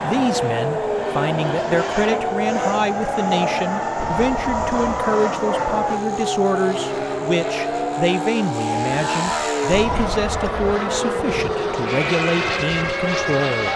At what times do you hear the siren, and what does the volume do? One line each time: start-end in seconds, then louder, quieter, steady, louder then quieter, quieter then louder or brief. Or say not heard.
0.1-13.7 steady.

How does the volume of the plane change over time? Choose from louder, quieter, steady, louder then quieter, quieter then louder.
steady.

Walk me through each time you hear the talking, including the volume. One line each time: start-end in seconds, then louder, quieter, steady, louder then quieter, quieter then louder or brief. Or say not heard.
0.0-13.7 steady.